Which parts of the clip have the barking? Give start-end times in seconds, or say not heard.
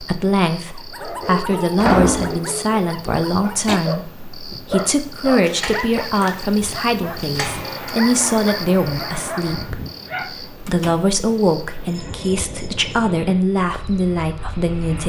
0.8-10.3.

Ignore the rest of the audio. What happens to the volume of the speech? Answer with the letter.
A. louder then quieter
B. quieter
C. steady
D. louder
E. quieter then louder
C.